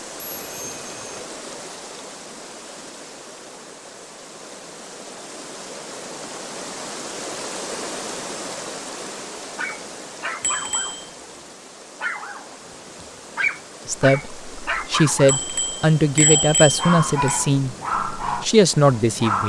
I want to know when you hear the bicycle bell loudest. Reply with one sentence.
The volume of the bicycle bell peaks at 16 seconds.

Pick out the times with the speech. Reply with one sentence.
You can hear the speech from 13.8 to 19.4 s.